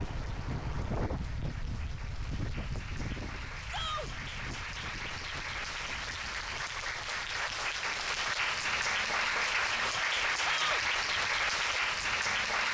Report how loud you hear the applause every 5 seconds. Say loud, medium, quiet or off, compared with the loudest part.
quiet, loud, loud.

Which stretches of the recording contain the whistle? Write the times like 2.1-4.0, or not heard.
not heard.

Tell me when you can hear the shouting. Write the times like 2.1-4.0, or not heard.
3.6-4.1, 10.4-10.8.